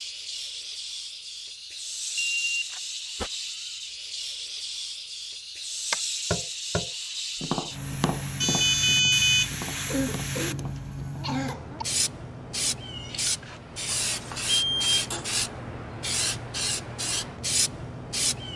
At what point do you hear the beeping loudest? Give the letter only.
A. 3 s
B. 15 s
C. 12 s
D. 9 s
D.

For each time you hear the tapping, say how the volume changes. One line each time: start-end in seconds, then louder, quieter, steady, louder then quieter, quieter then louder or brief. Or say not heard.
5.9-11.5 quieter.